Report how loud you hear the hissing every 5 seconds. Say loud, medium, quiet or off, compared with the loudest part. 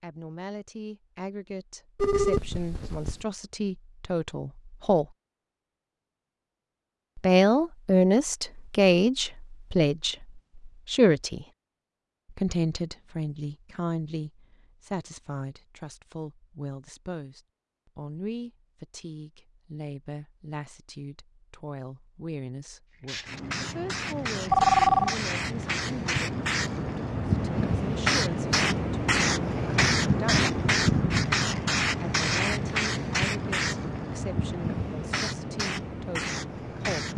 off, off, off, off, medium, loud, loud, medium.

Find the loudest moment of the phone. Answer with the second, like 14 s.
25 s.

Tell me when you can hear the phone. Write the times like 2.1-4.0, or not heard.
1.9-3.2, 24.5-25.1.